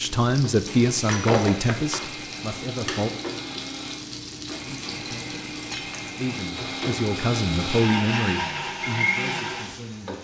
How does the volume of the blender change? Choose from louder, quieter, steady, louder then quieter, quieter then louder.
louder.